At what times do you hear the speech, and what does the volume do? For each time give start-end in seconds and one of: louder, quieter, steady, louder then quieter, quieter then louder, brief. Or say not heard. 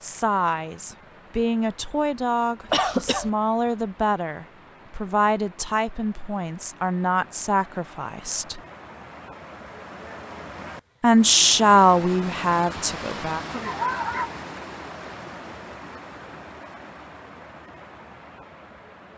0.0-8.6 steady
11.0-13.4 brief.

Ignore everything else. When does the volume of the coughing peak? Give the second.
3 s.